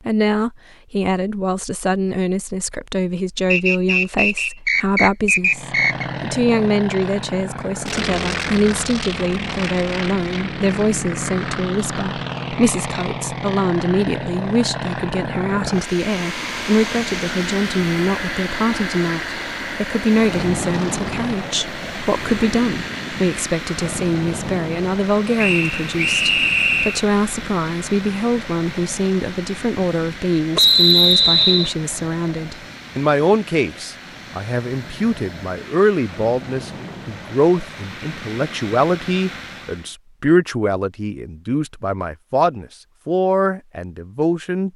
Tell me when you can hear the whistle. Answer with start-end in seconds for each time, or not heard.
3.5-6.0, 25.4-27.0, 30.6-31.7.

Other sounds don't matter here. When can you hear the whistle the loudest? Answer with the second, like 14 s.
31 s.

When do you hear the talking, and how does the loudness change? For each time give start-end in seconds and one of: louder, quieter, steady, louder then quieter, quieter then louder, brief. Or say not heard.
0.1-44.7 steady.